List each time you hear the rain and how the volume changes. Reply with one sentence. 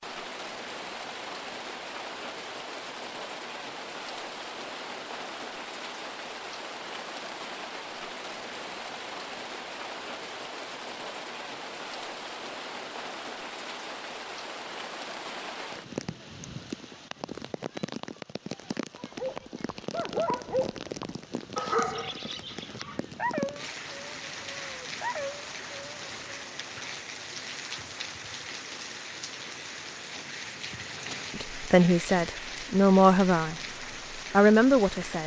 You can hear the rain from 0.0 to 35.2 s, at a steady volume.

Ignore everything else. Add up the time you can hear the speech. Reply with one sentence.
The speech can be heard for 3 seconds in total.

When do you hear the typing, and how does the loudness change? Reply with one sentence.
The typing can't be heard in this clip.